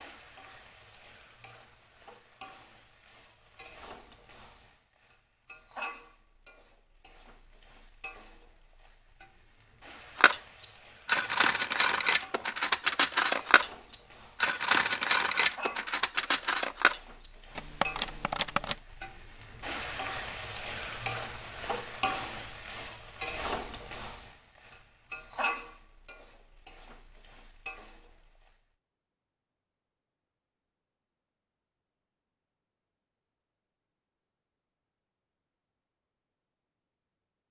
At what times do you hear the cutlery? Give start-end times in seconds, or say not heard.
10.2-18.8.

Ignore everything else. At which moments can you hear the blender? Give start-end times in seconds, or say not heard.
not heard.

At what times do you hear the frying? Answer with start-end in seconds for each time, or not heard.
0.0-28.6.